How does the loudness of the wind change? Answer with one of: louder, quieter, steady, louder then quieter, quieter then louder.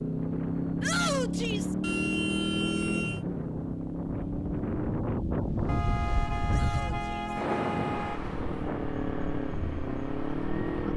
louder then quieter.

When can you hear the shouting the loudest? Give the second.
1 s.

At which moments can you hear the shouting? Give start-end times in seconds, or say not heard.
0.8-1.8, 6.5-7.3.